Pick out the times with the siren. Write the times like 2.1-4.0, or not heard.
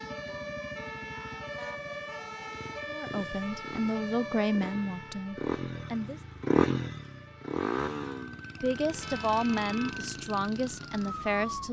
0.0-11.6.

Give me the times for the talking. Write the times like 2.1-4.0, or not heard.
2.9-6.2, 8.6-11.6.